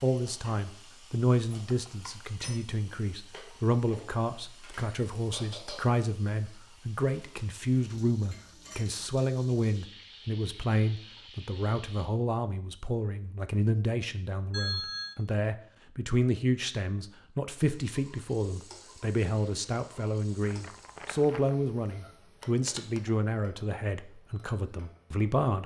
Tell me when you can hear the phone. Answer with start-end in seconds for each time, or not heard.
1.5-2.6, 14.5-15.2, 22.4-23.0.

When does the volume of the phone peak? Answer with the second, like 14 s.
15 s.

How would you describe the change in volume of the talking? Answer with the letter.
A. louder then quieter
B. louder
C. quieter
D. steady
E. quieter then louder
D.